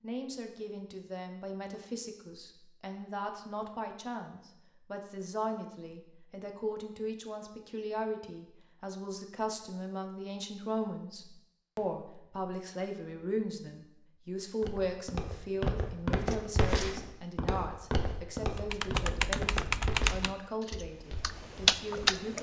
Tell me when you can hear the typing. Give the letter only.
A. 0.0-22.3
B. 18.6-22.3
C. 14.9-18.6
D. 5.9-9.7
B.